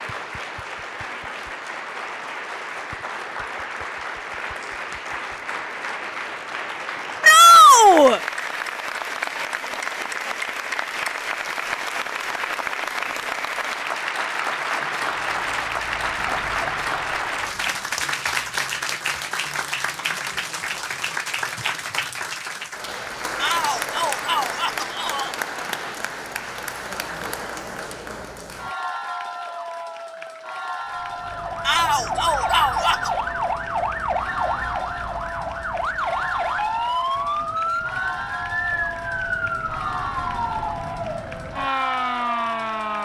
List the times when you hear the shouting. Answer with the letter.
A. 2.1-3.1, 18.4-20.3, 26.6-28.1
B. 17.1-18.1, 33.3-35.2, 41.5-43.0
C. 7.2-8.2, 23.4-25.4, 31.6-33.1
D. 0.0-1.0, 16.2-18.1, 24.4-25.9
C.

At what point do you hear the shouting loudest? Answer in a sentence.
The loudest moment of the shouting is at 8 seconds.